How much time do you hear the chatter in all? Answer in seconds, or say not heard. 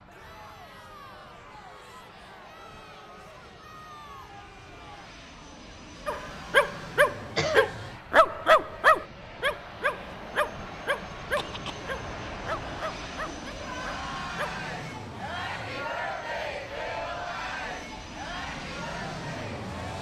20 s.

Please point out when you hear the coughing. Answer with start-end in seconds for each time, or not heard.
7.3-7.8, 11.2-11.9.